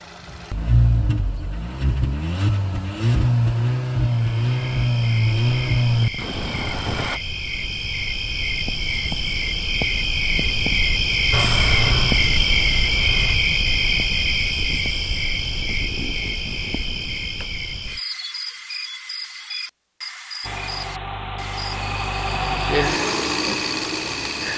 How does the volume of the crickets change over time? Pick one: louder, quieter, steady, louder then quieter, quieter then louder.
louder then quieter.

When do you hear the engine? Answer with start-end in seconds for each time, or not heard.
0.0-7.2, 11.3-13.4, 20.4-24.5.